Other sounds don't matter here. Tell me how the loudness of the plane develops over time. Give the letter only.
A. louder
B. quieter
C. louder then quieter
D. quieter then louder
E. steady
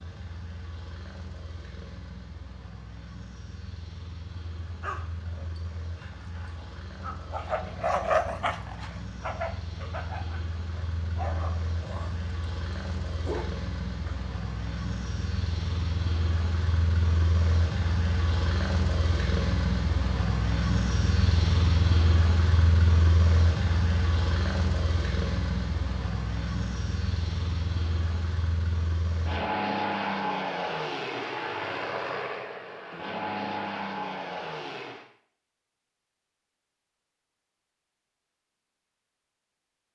A.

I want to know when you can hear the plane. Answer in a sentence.
You can hear the plane from 0.0 to 35.0 s.